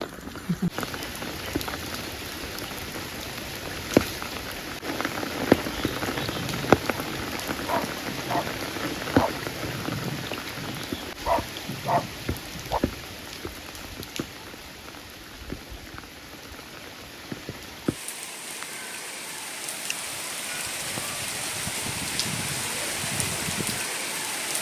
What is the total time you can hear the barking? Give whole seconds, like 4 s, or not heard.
7 s.